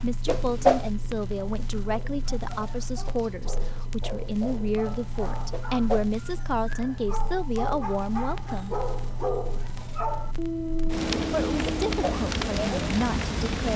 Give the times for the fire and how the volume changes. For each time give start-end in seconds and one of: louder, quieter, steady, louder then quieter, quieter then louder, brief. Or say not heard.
0.0-13.7 louder.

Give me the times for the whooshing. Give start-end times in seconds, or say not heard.
0.2-0.9, 5.5-6.1, 11.8-12.2.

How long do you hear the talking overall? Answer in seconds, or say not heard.
12 s.